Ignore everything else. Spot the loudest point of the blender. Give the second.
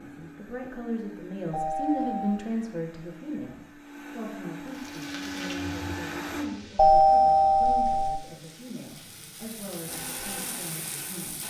6 s.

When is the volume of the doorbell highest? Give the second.
7 s.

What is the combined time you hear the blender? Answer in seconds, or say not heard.
8 s.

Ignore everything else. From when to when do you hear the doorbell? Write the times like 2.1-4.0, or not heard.
1.5-2.4, 6.8-8.2.